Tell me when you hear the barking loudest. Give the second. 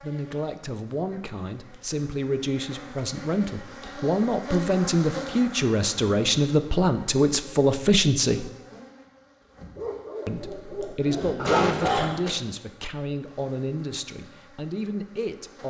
12 s.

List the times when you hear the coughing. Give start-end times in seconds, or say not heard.
10.8-12.3.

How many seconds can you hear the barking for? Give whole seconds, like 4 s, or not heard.
3 s.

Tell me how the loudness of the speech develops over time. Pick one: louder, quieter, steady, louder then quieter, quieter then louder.
louder then quieter.